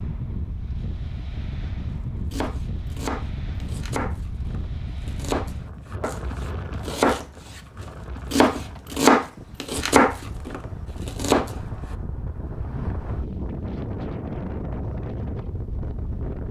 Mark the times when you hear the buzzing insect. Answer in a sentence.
The buzzing insect can't be heard in this clip.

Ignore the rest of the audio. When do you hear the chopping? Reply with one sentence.
You can hear the chopping from 2.3 to 6.2 s, from 6.8 to 7.6 s and from 8.3 to 11.5 s.